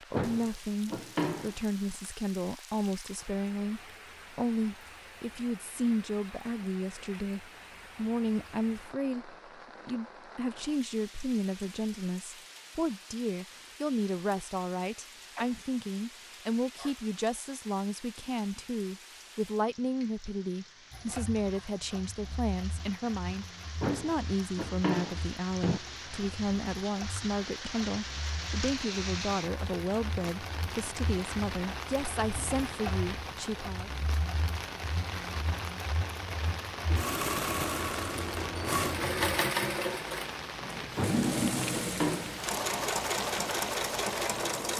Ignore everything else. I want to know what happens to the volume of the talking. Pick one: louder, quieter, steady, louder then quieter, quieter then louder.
steady.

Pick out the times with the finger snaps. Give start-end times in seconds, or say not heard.
not heard.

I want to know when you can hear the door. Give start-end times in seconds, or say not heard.
0.1-1.6, 23.8-25.8, 41.0-42.4.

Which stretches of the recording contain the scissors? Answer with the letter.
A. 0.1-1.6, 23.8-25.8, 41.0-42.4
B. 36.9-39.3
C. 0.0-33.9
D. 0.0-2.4
B.